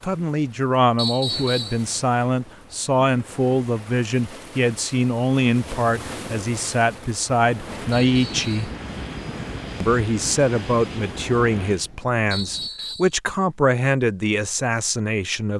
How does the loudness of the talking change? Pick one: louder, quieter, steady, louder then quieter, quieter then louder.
steady.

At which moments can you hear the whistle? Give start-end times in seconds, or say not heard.
0.9-1.8, 7.9-8.8, 12.3-13.2.